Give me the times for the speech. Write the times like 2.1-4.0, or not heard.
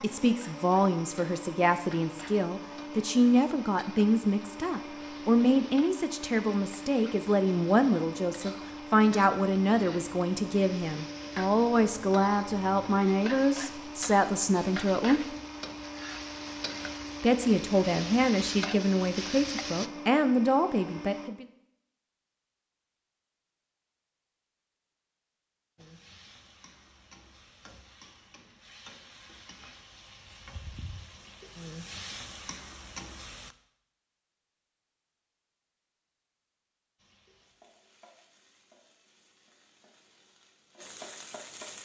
0.0-15.3, 17.2-21.4.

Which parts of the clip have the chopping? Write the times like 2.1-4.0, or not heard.
not heard.